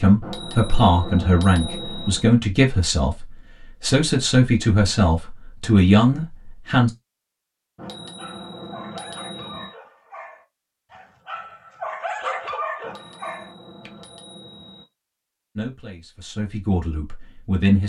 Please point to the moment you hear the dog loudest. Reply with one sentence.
The loudest moment of the dog is at 12 seconds.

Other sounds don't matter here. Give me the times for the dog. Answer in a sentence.
You can hear the dog from 7.8 to 14.2 s.